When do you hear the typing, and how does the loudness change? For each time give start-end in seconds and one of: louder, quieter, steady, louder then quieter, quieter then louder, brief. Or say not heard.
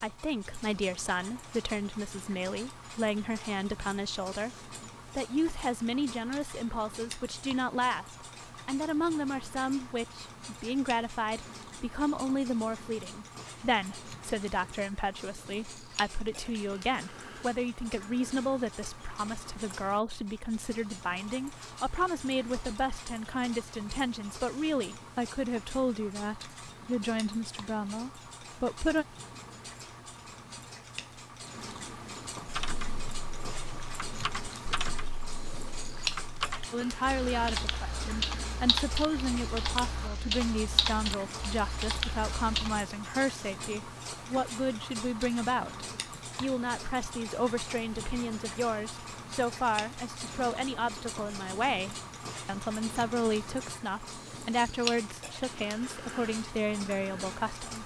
32.5-42.9 louder.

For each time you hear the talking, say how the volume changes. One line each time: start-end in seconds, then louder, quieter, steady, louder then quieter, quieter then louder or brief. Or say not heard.
0.0-29.1 steady
36.7-57.8 steady.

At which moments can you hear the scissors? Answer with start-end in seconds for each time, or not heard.
not heard.